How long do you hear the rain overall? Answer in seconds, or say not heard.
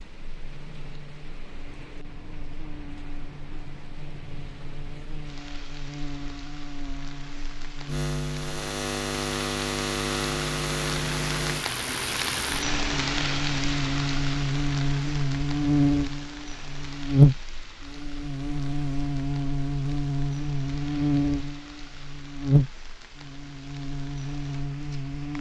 25 s.